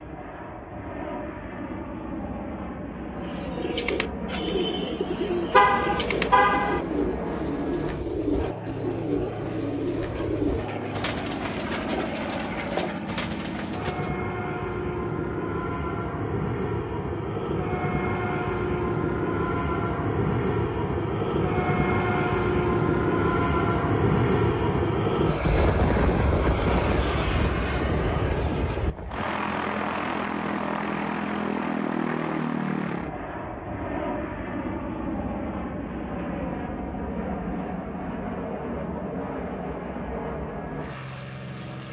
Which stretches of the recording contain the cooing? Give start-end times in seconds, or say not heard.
3.1-14.2.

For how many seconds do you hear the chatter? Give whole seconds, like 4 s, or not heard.
not heard.